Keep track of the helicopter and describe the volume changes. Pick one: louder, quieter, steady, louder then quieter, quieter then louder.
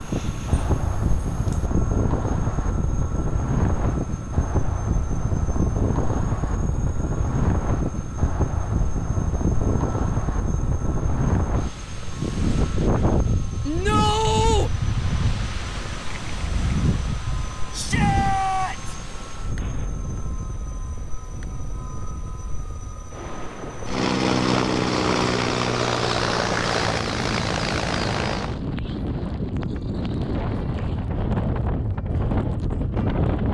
louder.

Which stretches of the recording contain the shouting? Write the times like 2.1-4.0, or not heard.
13.7-14.7, 17.7-18.9.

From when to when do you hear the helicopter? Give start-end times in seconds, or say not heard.
0.0-28.6.